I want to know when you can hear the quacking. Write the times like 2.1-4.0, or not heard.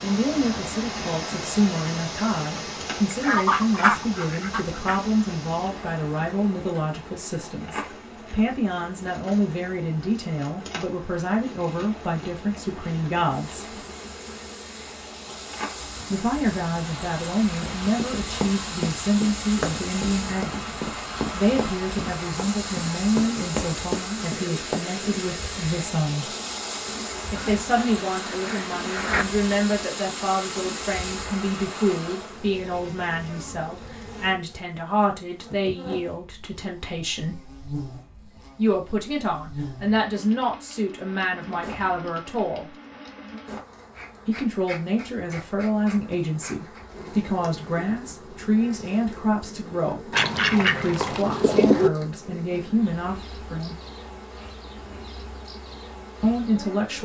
3.1-5.0, 27.4-29.2, 50.1-51.9.